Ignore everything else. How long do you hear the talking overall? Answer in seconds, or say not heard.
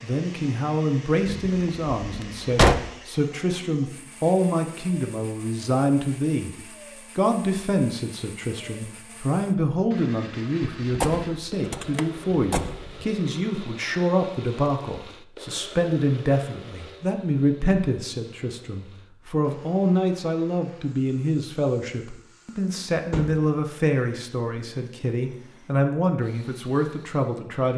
27 s.